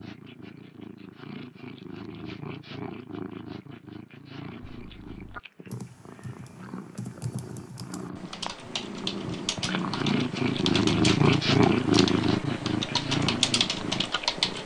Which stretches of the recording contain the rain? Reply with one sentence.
You can't hear the rain here.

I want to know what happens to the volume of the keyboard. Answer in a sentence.
The volume of the keyboard goes up.